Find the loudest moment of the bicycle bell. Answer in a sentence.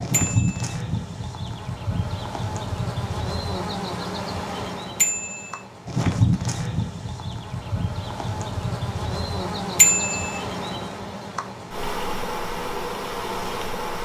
The loudest moment of the bicycle bell is at 10 seconds.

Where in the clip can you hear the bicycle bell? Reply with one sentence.
The bicycle bell can be heard from 0.1 to 0.7 s, from 5.0 to 5.6 s and from 9.8 to 10.4 s.